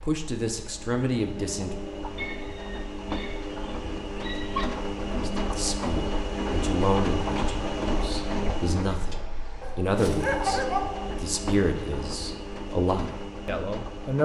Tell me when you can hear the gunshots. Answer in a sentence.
You can't hear the gunshots here.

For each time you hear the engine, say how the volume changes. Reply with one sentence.
You can hear the engine from 0.0 to 14.2 s, getting louder then quieter.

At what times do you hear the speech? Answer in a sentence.
You can hear the speech from 0.0 to 1.7 s and from 5.3 to 14.2 s.